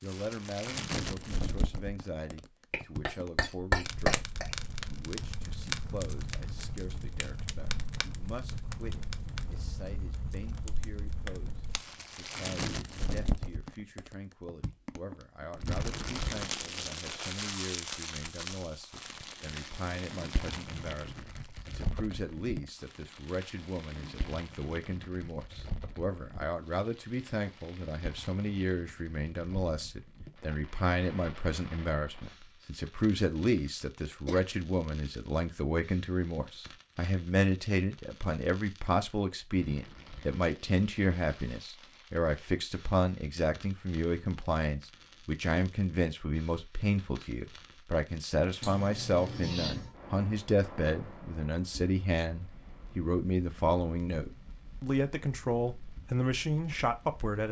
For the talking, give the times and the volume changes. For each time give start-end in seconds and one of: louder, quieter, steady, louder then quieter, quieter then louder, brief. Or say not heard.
0.0-57.4 louder.